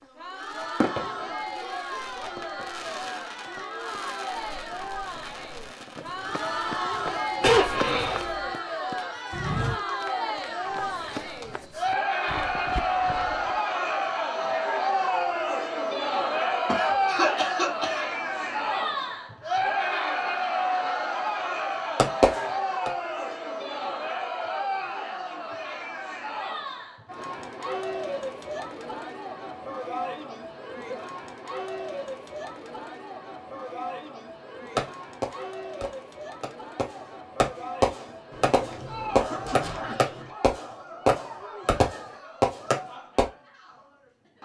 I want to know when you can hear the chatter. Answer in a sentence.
The chatter can be heard from 0.0 to 44.4 s.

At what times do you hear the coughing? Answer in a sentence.
You can hear the coughing from 7.4 to 8.4 s, from 16.6 to 18.1 s and from 38.3 to 40.3 s.